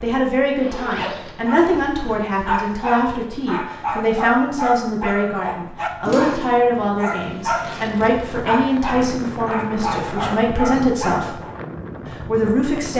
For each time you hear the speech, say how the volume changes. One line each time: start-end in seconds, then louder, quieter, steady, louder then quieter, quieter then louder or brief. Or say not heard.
0.0-11.3 steady
12.2-12.9 brief.